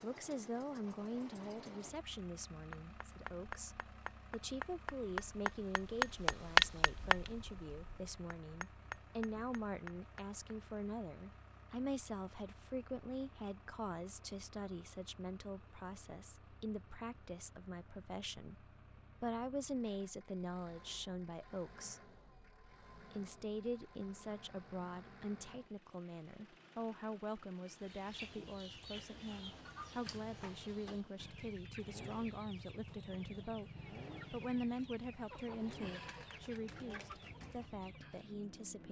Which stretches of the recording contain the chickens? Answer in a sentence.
The chickens can be heard from 27.6 to 38.4 s.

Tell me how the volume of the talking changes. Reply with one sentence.
The loudness of the talking stays about the same.